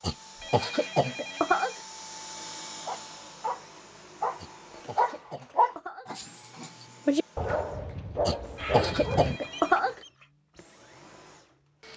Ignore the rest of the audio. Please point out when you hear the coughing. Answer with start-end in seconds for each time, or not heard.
0.0-1.8, 4.3-6.1, 8.2-9.9.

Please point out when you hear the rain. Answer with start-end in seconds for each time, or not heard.
not heard.